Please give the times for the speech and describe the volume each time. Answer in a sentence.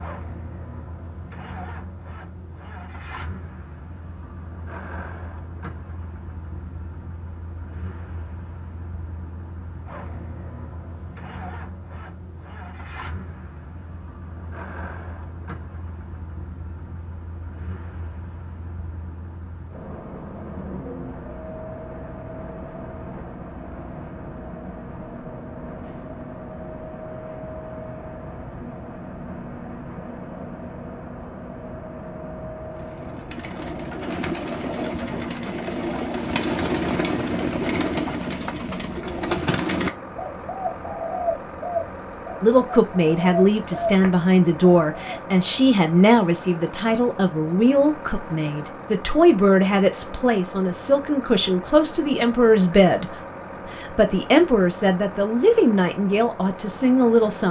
The speech can be heard from 42.4 to 57.4 s, at a steady volume.